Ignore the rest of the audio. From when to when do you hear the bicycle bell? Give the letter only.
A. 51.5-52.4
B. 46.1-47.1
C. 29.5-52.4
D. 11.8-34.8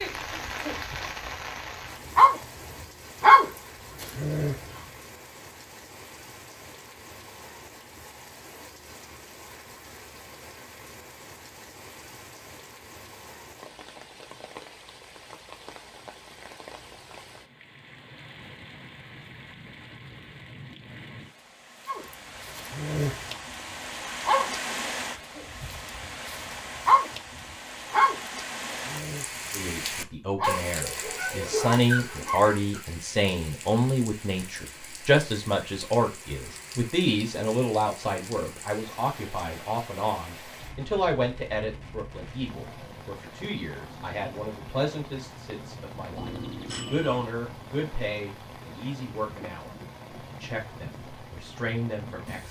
B.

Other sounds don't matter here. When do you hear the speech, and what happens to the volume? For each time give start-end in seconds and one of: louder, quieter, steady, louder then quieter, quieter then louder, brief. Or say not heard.
29.5-52.4 quieter.